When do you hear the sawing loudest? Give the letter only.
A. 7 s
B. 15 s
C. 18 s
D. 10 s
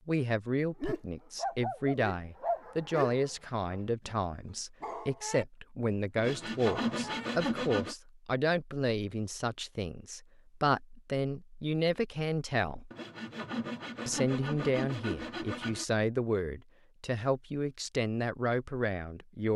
A.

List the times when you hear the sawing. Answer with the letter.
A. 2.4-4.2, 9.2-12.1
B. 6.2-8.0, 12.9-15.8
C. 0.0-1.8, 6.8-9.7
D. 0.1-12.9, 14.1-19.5
B.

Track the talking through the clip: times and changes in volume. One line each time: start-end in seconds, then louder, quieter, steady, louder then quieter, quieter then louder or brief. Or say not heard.
0.1-12.9 steady
14.1-19.5 steady.